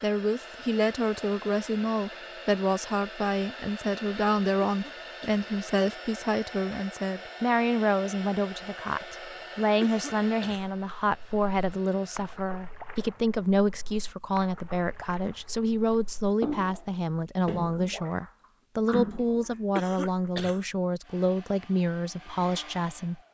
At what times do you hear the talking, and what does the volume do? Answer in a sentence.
The talking can be heard from 0.0 to 23.2 s, at a steady volume.